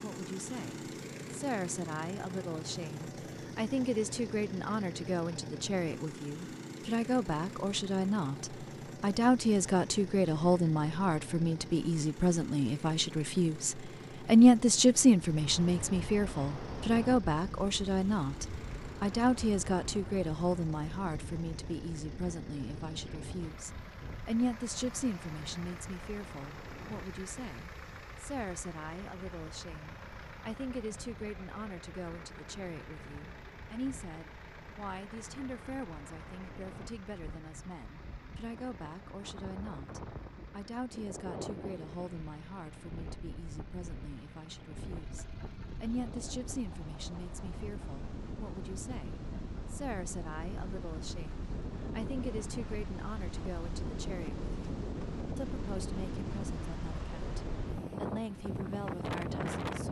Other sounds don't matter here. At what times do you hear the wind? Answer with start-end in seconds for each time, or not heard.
15.2-59.8.